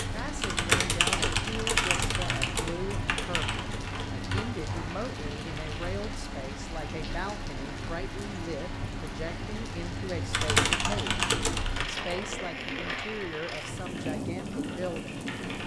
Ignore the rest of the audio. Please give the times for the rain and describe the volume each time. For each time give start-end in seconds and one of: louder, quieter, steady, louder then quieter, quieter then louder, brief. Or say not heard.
0.0-15.6 steady.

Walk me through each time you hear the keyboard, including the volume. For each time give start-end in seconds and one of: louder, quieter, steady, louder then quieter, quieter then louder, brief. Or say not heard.
0.0-5.9 quieter
10.3-15.6 quieter.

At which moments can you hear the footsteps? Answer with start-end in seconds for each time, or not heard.
not heard.